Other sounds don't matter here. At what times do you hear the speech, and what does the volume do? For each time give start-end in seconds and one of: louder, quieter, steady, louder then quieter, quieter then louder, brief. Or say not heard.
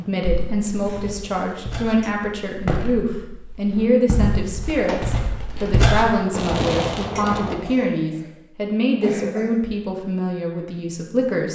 0.0-11.5 steady.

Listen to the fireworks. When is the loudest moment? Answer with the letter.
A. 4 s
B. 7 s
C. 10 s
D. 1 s
B.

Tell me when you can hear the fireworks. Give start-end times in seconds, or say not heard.
4.6-7.7.